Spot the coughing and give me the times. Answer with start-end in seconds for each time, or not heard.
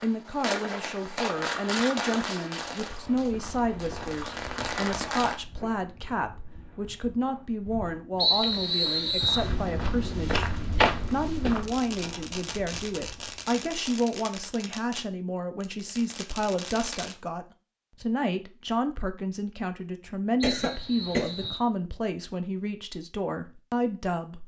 20.4-21.4.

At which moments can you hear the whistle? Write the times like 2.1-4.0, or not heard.
8.2-9.5, 20.4-21.6.